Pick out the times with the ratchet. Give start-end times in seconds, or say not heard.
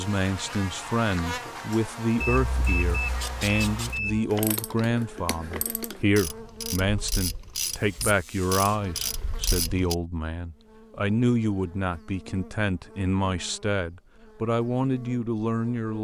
3.0-9.9.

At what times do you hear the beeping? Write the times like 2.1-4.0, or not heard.
2.2-4.2.